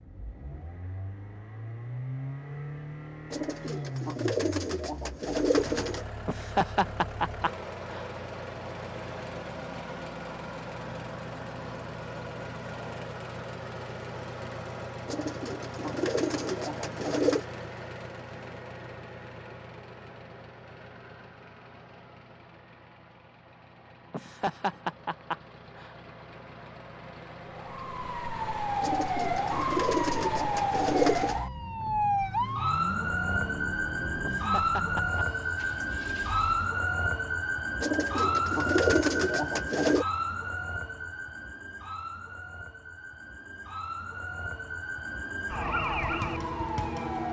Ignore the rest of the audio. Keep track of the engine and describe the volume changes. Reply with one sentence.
The loudness of the engine goes down, then up.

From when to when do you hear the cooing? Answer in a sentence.
You can hear the cooing from 3.3 to 6.0 s, from 15.1 to 17.4 s, from 28.8 to 31.4 s and from 37.8 to 40.0 s.